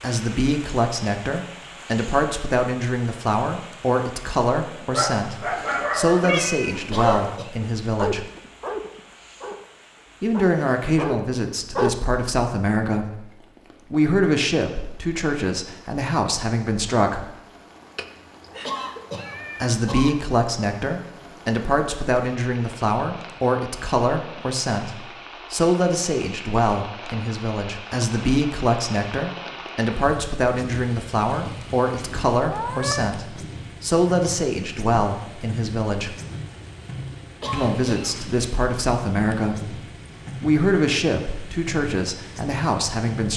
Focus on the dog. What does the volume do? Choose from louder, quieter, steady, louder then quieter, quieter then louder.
quieter then louder.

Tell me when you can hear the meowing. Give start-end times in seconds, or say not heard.
6.2-6.8, 17.9-19.7, 32.5-33.1.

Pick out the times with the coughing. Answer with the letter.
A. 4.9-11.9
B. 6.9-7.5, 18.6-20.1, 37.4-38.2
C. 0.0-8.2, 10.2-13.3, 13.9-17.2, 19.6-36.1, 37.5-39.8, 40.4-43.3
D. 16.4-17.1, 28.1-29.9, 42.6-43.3
B.